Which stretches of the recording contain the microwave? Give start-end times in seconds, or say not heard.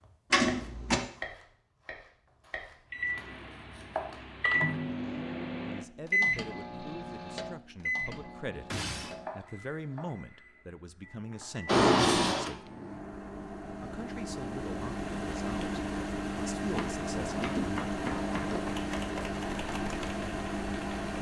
2.9-21.1.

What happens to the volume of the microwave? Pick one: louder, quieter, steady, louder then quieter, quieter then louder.
quieter then louder.